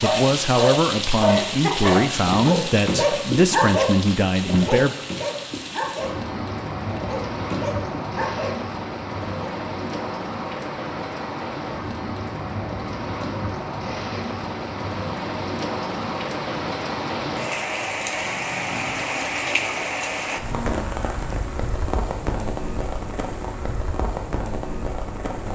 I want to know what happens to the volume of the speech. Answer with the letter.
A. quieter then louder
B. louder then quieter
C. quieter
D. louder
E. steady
E.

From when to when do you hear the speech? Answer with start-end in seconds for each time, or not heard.
0.0-5.0.